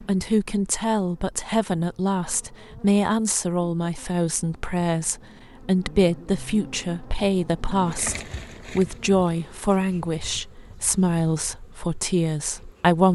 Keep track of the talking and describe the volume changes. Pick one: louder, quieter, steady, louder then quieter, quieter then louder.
steady.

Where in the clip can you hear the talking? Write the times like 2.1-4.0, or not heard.
0.0-13.0.